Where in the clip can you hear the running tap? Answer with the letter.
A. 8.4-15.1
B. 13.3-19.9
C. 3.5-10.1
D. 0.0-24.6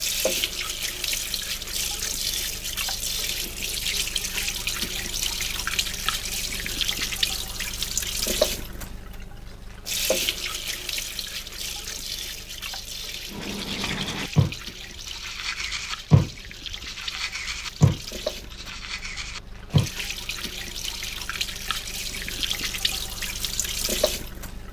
D.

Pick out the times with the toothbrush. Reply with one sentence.
The toothbrush can be heard from 13.3 to 19.9 s.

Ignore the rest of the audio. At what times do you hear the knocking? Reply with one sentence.
You can't hear the knocking here.